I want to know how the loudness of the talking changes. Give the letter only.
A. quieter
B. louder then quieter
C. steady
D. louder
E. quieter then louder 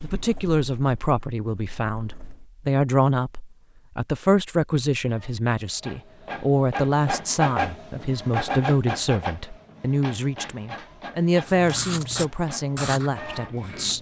C.